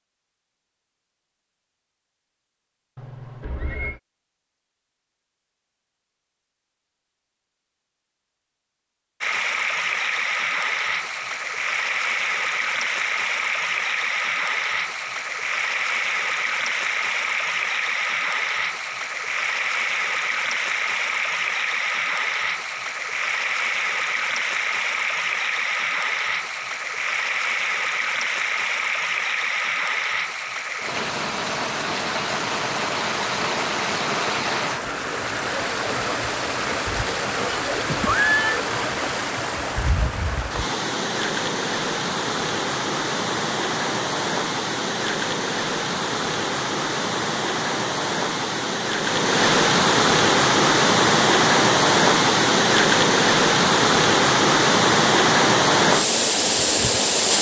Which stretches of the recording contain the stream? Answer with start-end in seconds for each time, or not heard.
9.2-57.3.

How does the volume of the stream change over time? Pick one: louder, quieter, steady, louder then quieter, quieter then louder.
louder.